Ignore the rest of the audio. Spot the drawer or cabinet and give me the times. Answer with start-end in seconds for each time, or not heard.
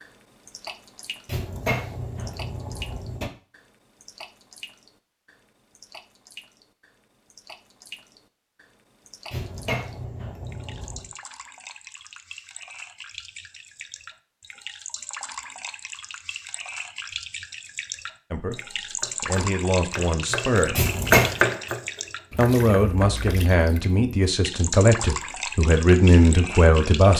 1.2-3.3, 9.3-11.1, 20.8-21.4.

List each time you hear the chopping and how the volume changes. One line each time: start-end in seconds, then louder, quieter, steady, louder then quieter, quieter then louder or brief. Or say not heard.
18.5-23.5 louder then quieter.